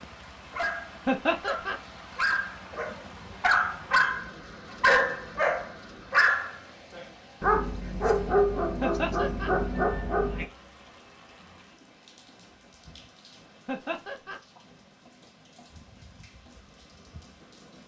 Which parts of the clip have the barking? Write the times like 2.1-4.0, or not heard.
0.0-10.4.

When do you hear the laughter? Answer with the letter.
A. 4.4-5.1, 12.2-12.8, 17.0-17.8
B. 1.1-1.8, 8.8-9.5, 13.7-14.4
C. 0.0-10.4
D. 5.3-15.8
B.